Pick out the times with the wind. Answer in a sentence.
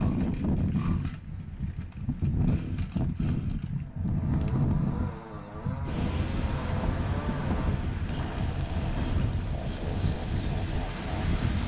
The wind can be heard from 0.0 to 11.6 s.